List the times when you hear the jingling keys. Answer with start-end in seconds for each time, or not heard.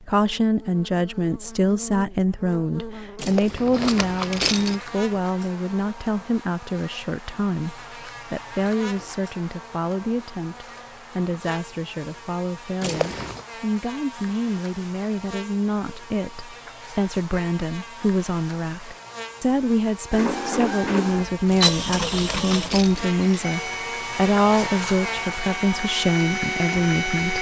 3.1-4.8, 12.8-13.4, 21.4-23.1.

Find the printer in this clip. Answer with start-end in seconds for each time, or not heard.
20.1-27.3.